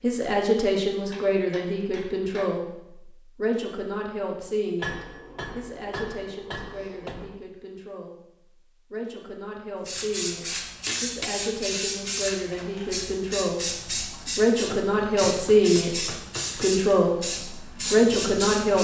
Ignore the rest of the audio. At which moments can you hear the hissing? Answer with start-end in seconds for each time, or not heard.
9.8-18.8.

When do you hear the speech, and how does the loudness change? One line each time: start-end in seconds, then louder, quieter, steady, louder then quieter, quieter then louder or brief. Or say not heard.
0.0-18.8 quieter then louder.